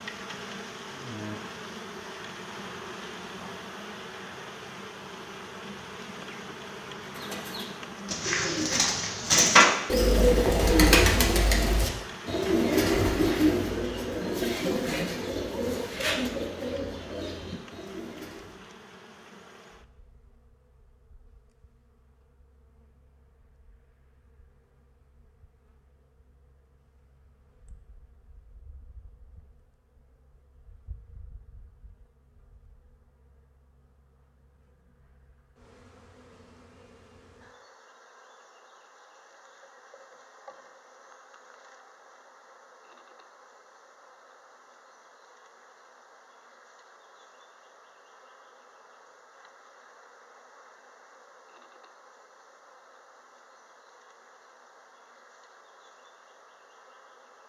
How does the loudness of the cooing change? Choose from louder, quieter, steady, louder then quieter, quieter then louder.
quieter.